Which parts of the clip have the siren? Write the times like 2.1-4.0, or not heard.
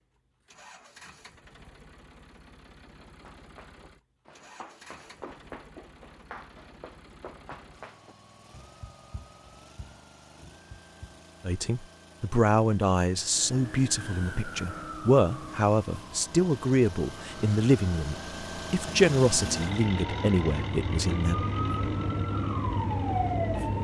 13.2-23.7.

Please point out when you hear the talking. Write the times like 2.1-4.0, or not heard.
11.4-21.4.